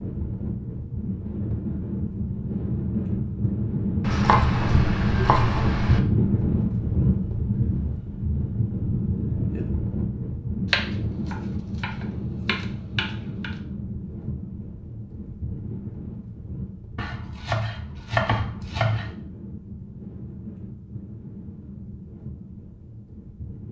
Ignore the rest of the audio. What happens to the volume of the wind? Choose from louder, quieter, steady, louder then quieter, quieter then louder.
quieter.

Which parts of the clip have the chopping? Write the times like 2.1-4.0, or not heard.
4.0-6.0, 10.7-13.5, 16.9-19.1.